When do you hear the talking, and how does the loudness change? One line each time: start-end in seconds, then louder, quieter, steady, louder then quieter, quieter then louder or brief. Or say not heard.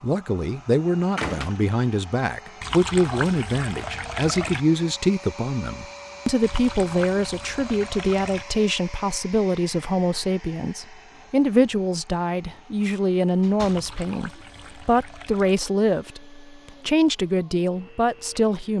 0.0-18.7 steady.